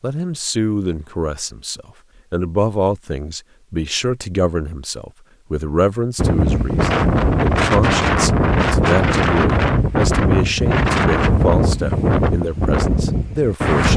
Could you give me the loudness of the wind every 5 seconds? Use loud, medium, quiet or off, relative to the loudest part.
off, loud, loud.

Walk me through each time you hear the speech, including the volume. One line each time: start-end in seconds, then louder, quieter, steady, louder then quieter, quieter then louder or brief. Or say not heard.
0.0-13.9 steady.